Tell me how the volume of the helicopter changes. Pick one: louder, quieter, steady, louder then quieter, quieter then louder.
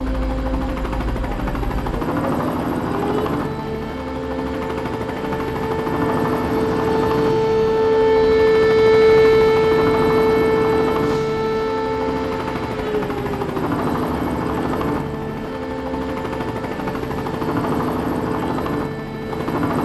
steady.